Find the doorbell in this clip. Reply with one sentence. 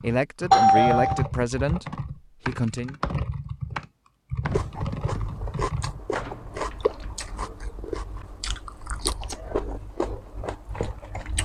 The doorbell can be heard from 0.5 to 1.2 s.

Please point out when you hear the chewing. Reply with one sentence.
The chewing can be heard from 4.5 to 11.3 s.